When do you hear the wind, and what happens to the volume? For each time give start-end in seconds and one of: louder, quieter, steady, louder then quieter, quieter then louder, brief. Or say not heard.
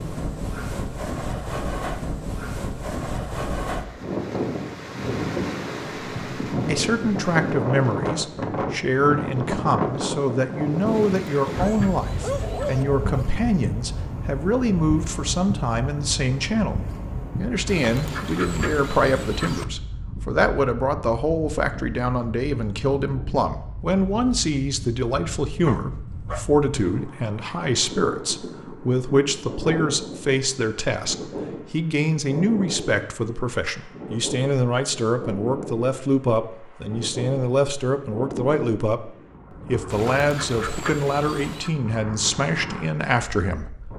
0.0-43.9 quieter.